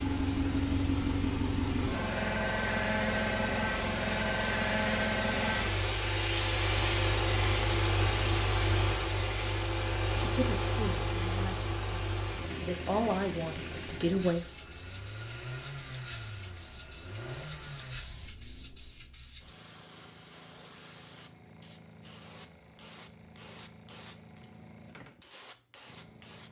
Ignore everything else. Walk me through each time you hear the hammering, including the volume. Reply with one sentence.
You can't hear the hammering here.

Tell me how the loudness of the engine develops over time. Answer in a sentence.
The loudness of the engine goes down.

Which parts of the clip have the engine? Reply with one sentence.
The engine can be heard from 0.0 to 19.1 s.